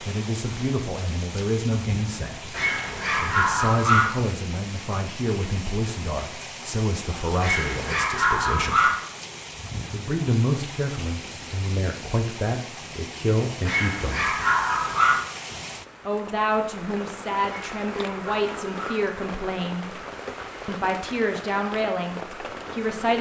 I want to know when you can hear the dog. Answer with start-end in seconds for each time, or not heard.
2.5-4.0, 7.4-8.9, 13.7-15.2, 17.4-19.0.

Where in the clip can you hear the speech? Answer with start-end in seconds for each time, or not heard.
0.0-8.9, 9.9-14.3, 16.1-20.0, 20.6-23.1.